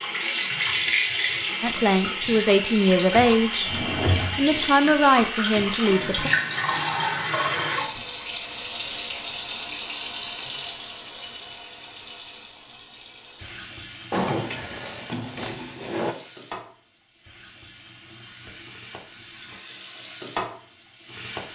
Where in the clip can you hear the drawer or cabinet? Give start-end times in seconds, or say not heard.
3.1-4.5, 14.1-16.1.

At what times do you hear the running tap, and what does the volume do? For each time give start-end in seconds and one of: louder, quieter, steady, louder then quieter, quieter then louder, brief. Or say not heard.
0.0-21.5 quieter.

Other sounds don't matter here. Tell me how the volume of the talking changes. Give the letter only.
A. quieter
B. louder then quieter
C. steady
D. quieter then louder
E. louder
D.